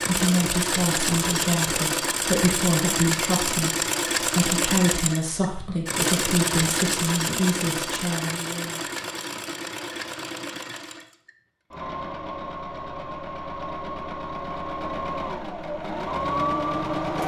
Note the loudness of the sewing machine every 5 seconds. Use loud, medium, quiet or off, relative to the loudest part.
loud, loud, medium, loud.